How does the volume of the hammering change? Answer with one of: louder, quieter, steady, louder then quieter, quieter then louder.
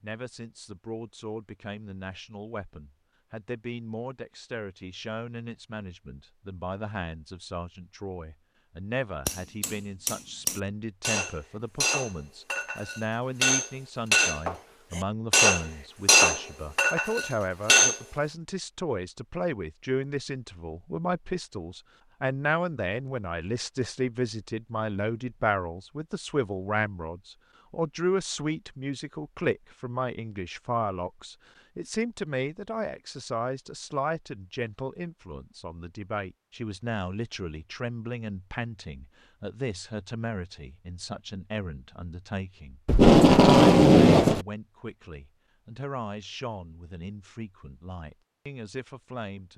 louder.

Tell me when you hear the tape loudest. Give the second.
43 s.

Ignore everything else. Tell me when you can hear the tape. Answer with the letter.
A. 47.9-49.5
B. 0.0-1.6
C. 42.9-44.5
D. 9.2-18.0
C.